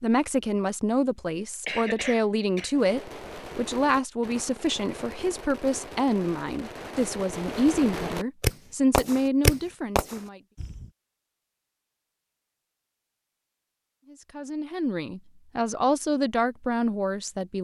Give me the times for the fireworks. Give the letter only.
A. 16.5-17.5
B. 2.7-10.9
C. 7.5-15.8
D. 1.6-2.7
B.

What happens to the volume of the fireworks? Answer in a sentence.
The volume of the fireworks goes up.